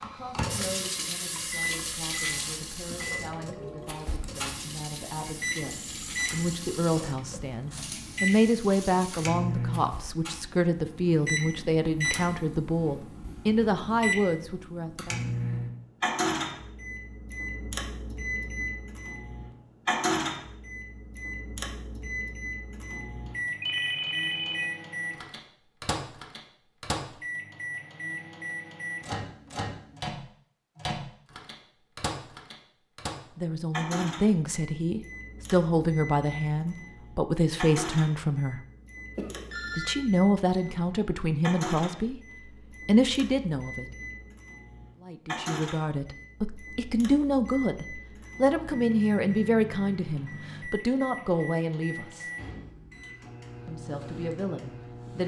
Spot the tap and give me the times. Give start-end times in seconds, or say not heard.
0.0-9.3.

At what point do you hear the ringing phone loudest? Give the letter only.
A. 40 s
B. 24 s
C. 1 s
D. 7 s
B.